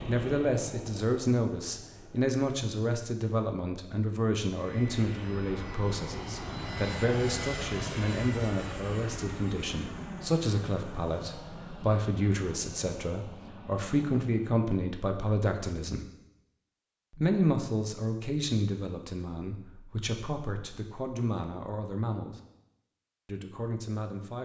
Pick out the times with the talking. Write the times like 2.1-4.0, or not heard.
0.1-16.1, 17.1-22.4, 23.2-24.4.